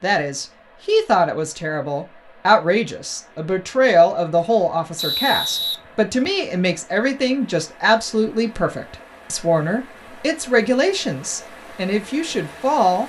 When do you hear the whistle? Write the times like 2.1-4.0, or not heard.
5.0-6.5.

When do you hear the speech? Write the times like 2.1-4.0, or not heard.
0.0-13.0.